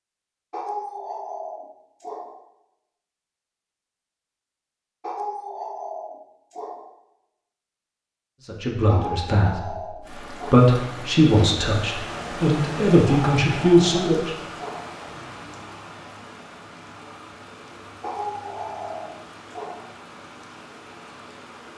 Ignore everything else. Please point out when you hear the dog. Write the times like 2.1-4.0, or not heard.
0.5-2.4, 5.0-6.9, 8.8-10.7, 13.1-14.9, 18.0-19.9.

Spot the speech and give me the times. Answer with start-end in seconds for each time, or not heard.
8.4-14.3.